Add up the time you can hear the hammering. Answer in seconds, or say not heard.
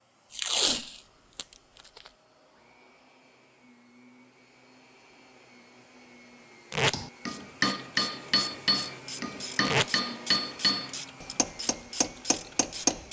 6 s.